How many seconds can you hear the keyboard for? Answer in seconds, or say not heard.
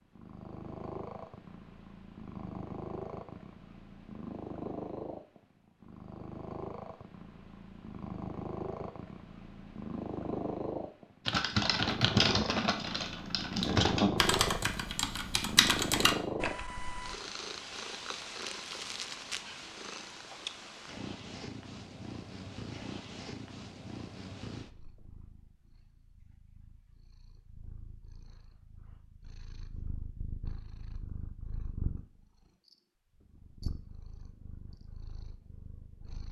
6 s.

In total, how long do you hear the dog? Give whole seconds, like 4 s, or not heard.
not heard.